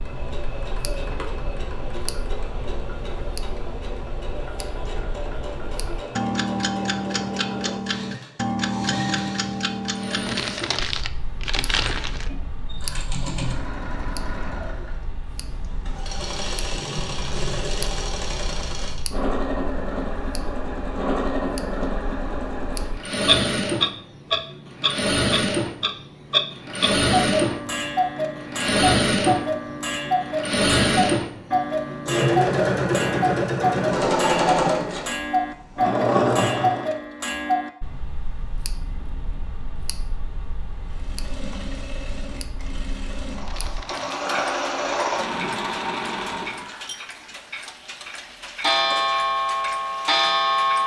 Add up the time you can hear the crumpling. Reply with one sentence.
The crumpling can be heard for 3 seconds in total.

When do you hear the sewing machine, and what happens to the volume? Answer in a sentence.
You can hear the sewing machine from 0.0 to 37.0 s, getting louder; and from 40.9 to 46.7 s, getting louder.